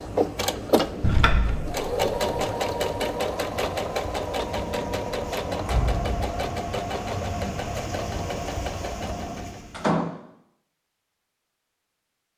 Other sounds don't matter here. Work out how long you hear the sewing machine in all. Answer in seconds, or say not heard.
10 s.